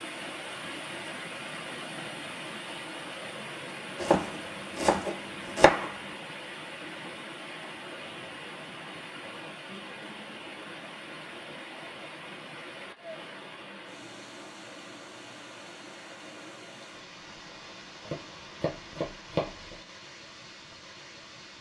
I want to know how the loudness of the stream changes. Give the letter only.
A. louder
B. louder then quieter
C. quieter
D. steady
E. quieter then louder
C.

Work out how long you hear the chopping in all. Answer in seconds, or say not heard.
4 s.